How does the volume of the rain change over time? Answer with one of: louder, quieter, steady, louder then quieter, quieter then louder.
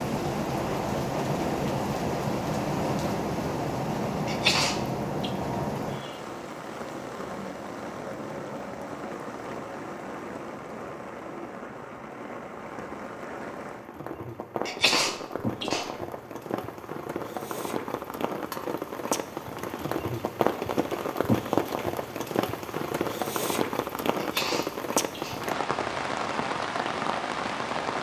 quieter then louder.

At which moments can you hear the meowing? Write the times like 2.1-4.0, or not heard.
not heard.